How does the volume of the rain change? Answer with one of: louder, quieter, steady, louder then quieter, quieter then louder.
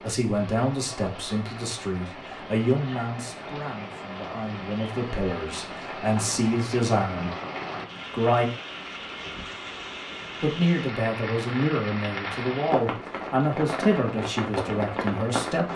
louder.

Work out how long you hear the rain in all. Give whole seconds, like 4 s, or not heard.
16 s.